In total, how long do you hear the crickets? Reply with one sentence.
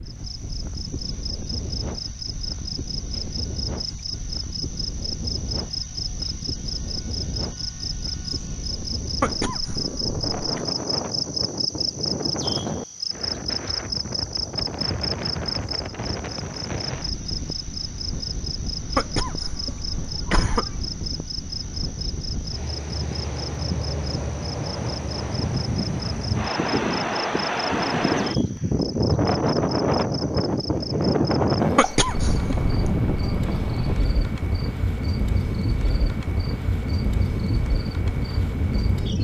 The crickets can be heard for 39 seconds in total.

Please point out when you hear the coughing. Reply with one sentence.
You can hear the coughing from 9.2 to 10.7 s, from 18.9 to 20.9 s and from 31.8 to 32.8 s.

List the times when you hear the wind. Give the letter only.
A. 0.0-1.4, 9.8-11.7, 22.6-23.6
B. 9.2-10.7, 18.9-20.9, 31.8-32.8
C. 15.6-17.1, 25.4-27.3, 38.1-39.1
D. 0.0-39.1
D.